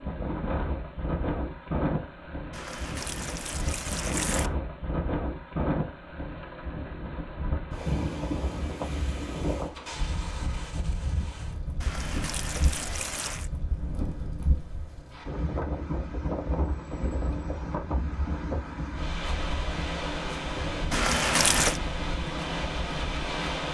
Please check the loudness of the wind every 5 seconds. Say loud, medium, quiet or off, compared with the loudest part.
loud, loud, medium, loud, loud.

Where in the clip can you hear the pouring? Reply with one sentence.
You can hear the pouring from 2.5 to 4.5 s, from 11.8 to 13.5 s and from 20.9 to 21.8 s.